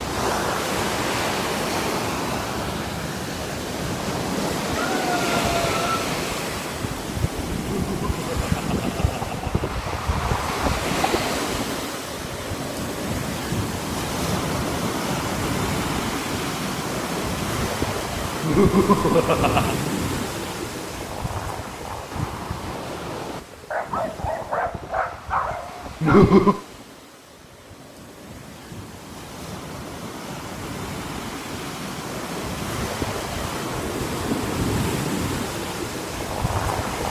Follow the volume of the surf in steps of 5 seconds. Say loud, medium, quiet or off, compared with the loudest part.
loud, loud, loud, loud, medium, quiet, loud, loud.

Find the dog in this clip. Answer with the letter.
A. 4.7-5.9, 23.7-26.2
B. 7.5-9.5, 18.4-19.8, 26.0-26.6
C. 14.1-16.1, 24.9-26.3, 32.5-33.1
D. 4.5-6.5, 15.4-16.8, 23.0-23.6
A.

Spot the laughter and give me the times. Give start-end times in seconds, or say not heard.
7.5-9.5, 18.4-19.8, 26.0-26.6.